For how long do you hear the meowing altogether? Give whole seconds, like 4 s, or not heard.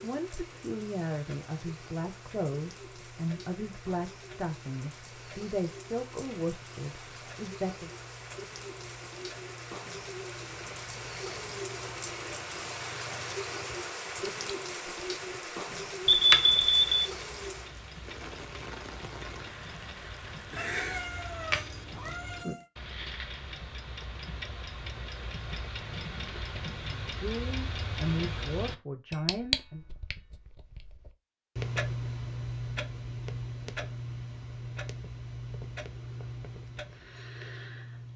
2 s.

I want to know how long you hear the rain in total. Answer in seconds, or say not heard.
22 s.